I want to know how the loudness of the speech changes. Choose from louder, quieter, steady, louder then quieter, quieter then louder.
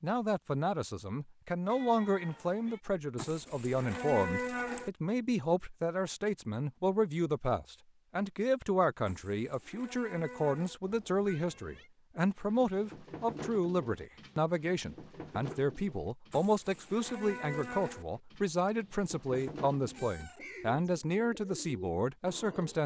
steady.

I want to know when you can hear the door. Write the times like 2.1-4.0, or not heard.
not heard.